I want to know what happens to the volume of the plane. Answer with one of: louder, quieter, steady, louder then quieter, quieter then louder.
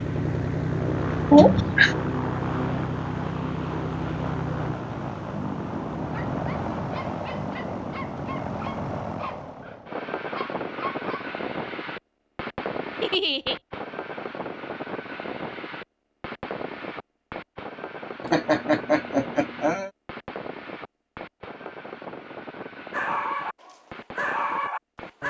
quieter.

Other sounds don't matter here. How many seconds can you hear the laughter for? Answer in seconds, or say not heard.
3 s.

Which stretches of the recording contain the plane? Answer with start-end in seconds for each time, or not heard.
0.0-25.2.